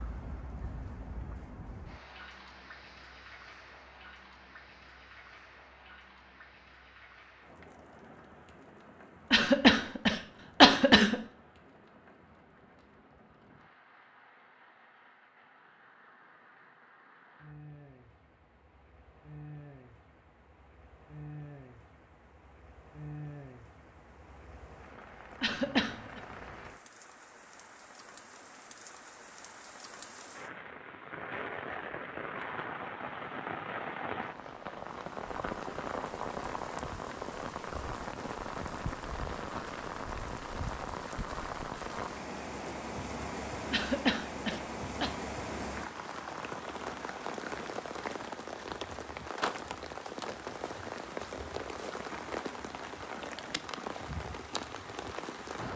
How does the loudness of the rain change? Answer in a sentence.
The loudness of the rain goes up.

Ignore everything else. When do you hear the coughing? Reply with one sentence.
You can hear the coughing from 9.3 to 11.2 s, from 25.4 to 26.2 s and from 43.7 to 45.1 s.